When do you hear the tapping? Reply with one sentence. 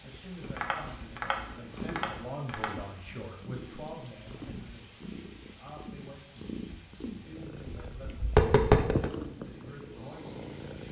You can hear the tapping from 0.4 to 2.7 s and from 7.7 to 9.1 s.